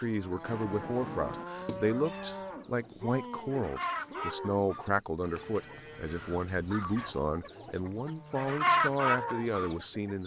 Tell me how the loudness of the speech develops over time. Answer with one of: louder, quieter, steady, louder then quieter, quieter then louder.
steady.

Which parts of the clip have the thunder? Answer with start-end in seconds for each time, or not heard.
0.5-1.4.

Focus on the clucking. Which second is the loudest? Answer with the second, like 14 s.
9 s.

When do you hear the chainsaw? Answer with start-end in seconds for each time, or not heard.
not heard.